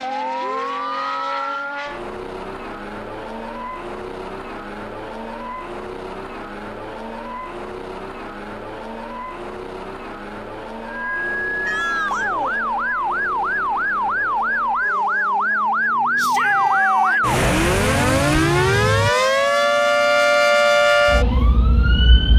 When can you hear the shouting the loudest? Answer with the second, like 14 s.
17 s.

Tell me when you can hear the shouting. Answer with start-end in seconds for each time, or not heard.
0.4-1.6, 11.6-12.6, 16.1-17.4.